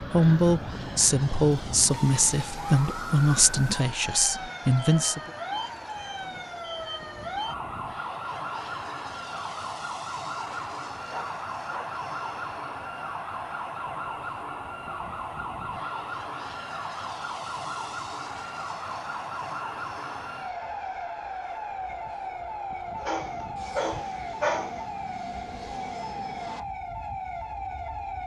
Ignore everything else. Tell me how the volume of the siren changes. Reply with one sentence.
The loudness of the siren stays about the same.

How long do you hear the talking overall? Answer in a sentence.
You can hear the talking for 5 seconds altogether.